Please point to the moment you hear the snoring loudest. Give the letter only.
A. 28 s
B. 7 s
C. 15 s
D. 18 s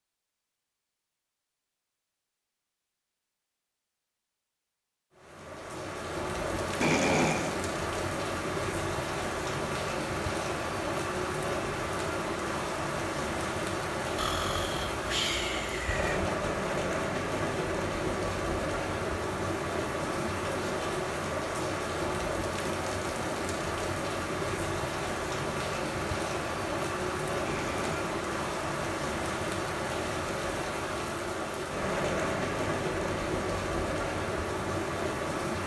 B.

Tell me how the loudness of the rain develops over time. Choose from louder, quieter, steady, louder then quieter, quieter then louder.
steady.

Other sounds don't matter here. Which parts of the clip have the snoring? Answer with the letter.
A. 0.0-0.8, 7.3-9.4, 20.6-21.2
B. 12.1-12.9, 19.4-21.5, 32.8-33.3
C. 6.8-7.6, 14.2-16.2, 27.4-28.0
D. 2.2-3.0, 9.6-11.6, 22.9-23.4
C.